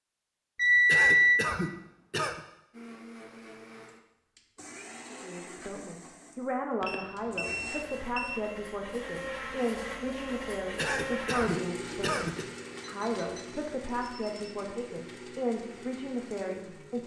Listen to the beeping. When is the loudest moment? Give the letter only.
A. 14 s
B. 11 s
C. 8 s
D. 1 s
D.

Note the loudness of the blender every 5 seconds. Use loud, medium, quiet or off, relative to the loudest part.
medium, loud, loud, medium.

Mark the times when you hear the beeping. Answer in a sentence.
You can hear the beeping from 0.6 to 1.4 s, from 6.8 to 8.3 s and from 12.8 to 14.6 s.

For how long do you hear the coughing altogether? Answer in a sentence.
You can hear the coughing for 3 seconds altogether.